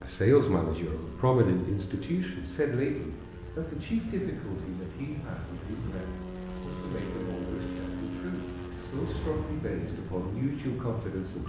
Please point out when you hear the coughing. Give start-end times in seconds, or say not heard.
9.0-9.6.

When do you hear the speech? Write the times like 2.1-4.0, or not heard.
0.0-11.4.